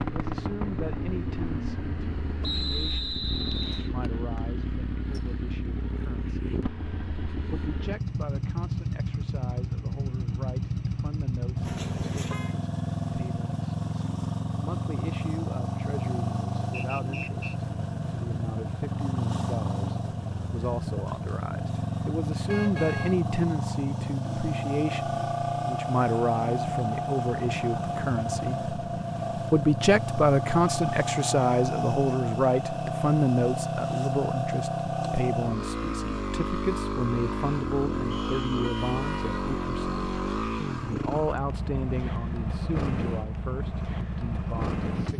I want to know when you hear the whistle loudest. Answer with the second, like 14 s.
3 s.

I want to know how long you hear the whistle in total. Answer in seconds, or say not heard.
3 s.